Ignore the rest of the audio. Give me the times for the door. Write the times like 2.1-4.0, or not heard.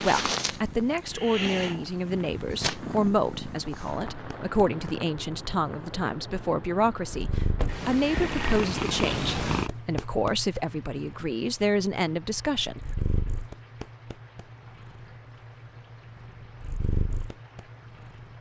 7.5-8.4.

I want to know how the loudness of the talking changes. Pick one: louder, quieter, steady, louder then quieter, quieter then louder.
steady.